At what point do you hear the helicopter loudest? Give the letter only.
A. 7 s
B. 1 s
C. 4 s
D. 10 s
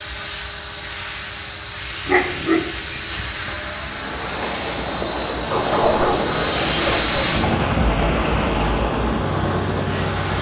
A.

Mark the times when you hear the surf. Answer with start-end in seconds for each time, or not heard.
3.9-10.3.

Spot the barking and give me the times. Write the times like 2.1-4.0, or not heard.
2.0-3.5, 5.5-7.3.